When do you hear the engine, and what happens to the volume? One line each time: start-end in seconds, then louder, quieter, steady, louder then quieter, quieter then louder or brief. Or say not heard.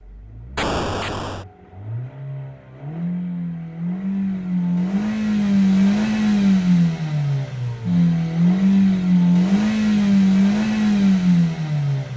0.0-12.1 louder.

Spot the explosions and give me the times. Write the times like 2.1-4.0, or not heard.
0.6-1.4.